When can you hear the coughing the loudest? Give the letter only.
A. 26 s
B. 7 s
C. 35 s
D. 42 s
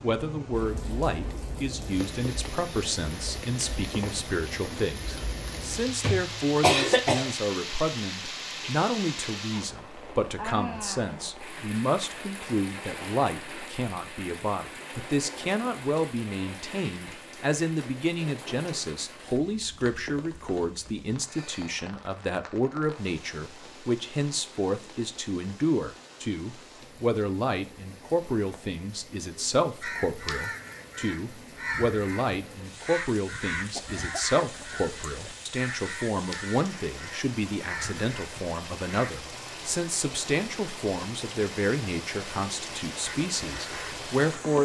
B.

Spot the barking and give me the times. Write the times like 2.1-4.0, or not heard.
not heard.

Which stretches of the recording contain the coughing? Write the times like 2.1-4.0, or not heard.
5.8-7.3, 33.7-35.4.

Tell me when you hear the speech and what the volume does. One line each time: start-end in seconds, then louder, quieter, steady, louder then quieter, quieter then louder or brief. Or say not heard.
0.0-44.6 steady.